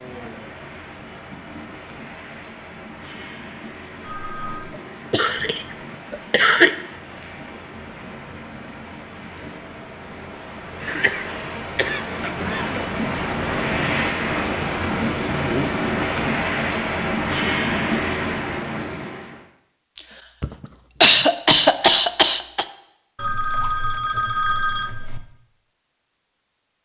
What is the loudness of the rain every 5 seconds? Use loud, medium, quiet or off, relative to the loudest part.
quiet, quiet, loud, loud, off, off.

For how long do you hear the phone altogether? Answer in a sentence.
The phone can be heard for 3 seconds in total.